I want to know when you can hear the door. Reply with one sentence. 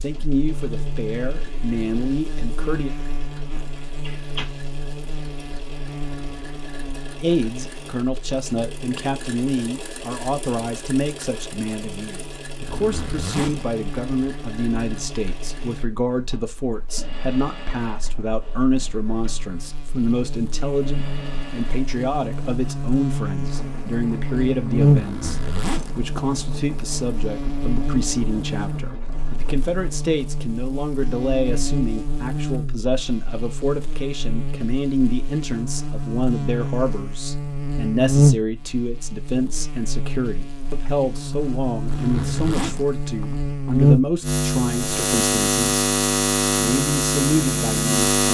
The door can be heard from 3.5 to 4.5 s.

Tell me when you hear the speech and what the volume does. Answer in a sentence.
You can hear the speech briefly from 0.0 to 2.9 s; from 7.2 to 45.6 s, at a steady volume; and briefly from 46.5 to 48.2 s.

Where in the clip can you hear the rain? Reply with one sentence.
You can't hear the rain here.